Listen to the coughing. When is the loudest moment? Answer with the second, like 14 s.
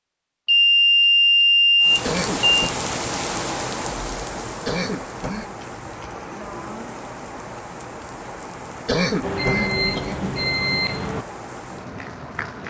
9 s.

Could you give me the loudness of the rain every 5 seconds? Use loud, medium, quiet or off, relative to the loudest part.
loud, medium, medium.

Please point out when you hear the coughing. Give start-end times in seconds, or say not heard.
2.0-2.7, 4.7-5.5, 8.8-10.3.